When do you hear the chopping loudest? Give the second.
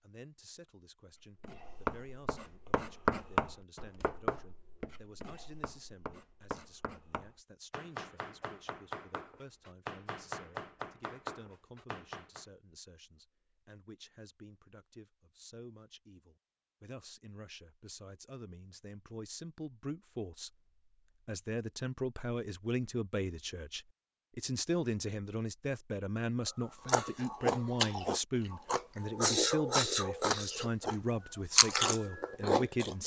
3 s.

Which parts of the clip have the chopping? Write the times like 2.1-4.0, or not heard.
1.2-12.4.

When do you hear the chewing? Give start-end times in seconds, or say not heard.
26.9-30.9, 31.6-33.0.